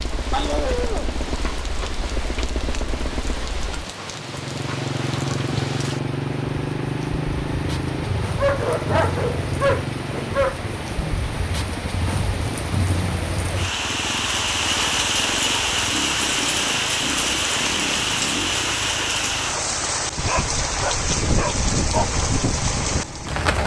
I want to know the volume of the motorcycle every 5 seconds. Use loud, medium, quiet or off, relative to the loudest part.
medium, loud, medium, medium, medium.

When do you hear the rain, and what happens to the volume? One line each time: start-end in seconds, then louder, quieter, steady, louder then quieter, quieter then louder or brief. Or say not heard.
0.0-23.6 louder.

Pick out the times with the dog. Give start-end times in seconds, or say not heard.
0.3-1.1, 8.3-10.7, 20.2-22.1.